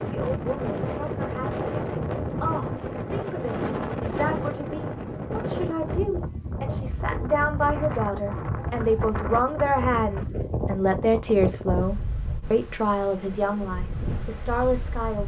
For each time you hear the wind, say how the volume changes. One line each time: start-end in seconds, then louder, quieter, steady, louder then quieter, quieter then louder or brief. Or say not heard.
0.0-15.2 quieter.